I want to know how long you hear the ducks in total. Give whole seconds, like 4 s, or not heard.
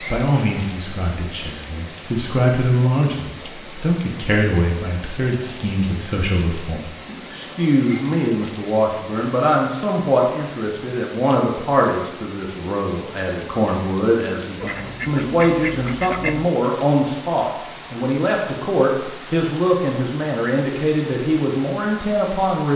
2 s.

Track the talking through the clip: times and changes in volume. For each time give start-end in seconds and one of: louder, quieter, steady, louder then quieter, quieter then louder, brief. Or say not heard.
0.0-22.7 steady.